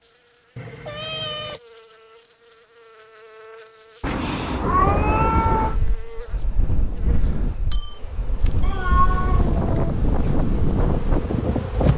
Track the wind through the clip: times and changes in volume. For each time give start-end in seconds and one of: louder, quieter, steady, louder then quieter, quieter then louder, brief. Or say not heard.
4.6-11.9 quieter then louder.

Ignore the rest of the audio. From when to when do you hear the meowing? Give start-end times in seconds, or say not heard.
0.6-1.6, 4.0-5.8, 8.6-9.7.